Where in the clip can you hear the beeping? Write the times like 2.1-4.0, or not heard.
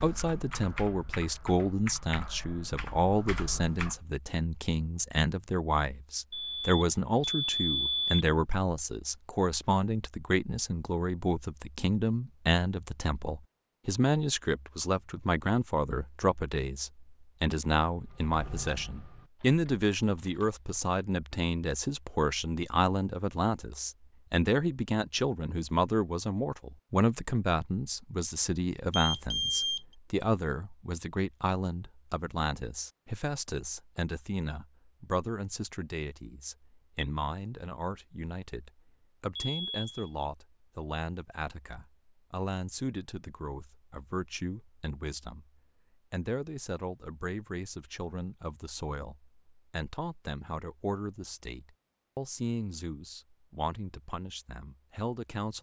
6.3-8.2, 28.9-29.8, 39.4-40.1.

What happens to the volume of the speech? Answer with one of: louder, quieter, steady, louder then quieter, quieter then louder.
quieter.